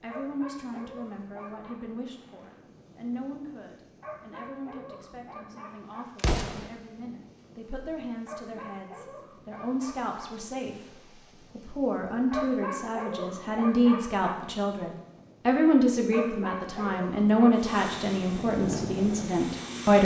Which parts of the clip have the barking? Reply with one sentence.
The barking can be heard from 0.1 to 1.8 s, from 4.0 to 6.0 s, from 8.2 to 10.2 s, from 12.3 to 14.3 s and from 16.1 to 17.6 s.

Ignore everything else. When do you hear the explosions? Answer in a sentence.
You can hear the explosions from 6.2 to 6.7 s.